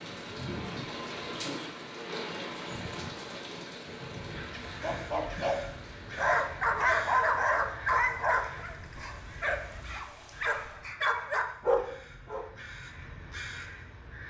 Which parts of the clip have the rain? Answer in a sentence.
You can hear the rain from 0.0 to 10.8 s.